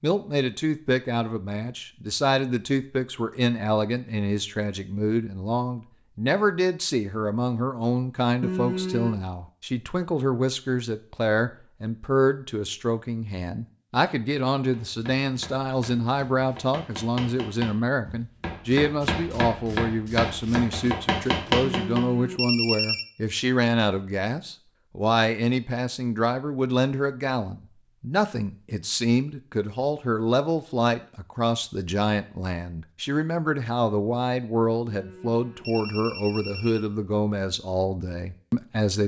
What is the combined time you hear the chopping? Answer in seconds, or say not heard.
7 s.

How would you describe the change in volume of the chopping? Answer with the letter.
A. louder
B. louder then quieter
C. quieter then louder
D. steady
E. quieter
A.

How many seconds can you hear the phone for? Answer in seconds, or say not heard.
4 s.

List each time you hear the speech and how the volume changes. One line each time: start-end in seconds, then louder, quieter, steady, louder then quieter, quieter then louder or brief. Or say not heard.
0.0-39.0 steady.